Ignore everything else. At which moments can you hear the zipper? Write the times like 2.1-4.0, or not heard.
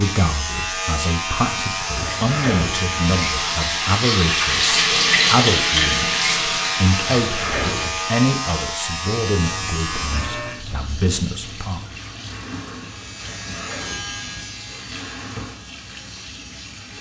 1.9-3.0, 7.0-8.0, 13.2-14.4.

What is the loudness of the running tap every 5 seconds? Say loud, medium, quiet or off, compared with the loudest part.
loud, loud, quiet, quiet.